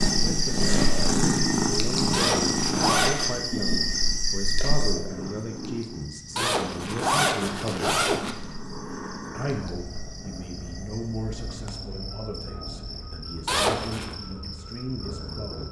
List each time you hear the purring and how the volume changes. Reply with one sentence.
The purring can be heard from 0.0 to 15.6 s, getting quieter.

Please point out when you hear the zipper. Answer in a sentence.
You can hear the zipper from 2.1 to 3.4 s, from 6.3 to 8.3 s and from 13.4 to 14.2 s.